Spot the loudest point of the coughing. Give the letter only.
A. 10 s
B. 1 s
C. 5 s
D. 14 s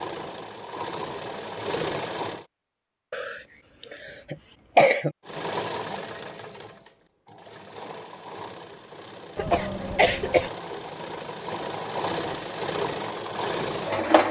C.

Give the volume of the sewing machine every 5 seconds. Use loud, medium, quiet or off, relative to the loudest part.
loud, medium, loud.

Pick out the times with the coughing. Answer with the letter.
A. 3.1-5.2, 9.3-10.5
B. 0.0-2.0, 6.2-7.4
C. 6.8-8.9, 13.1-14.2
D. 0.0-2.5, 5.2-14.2
A.